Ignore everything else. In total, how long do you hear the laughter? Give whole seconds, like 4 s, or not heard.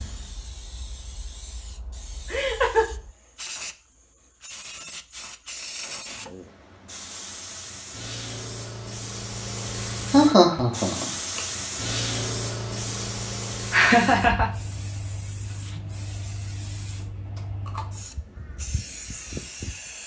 3 s.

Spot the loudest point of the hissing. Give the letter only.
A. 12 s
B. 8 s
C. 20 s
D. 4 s
A.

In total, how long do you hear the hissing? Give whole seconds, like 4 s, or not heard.
20 s.